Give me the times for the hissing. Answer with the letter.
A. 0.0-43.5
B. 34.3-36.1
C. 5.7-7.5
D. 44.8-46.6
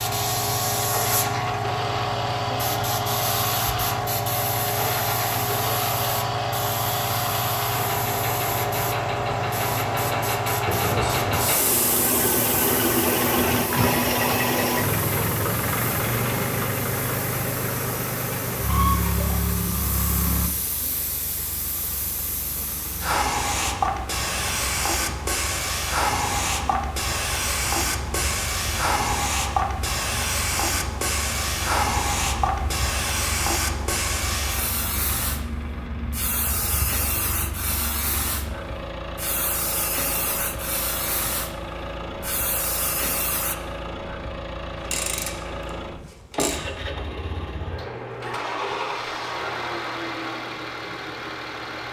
A.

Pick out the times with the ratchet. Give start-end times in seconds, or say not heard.
44.8-46.6.